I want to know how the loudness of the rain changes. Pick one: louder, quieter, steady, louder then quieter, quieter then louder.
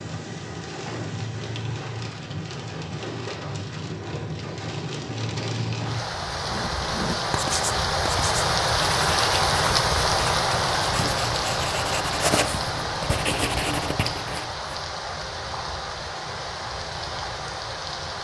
louder then quieter.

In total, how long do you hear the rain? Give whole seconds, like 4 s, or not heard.
18 s.